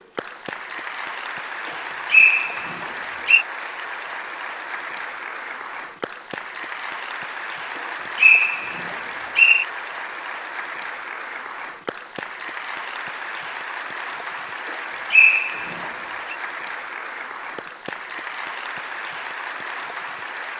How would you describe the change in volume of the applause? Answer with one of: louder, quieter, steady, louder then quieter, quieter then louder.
steady.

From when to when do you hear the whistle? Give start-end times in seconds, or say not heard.
2.1-3.5, 7.8-9.7, 15.1-16.4.